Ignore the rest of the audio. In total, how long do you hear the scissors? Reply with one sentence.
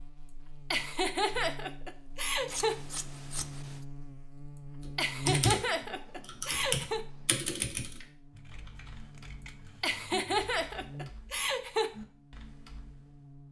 The scissors can be heard for 4 seconds in total.